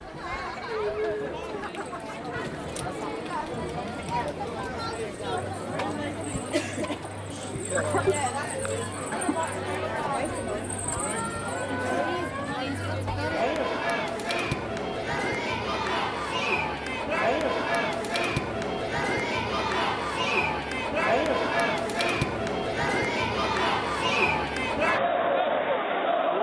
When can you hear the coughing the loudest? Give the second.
8 s.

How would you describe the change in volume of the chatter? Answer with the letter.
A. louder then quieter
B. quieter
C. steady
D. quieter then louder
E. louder
E.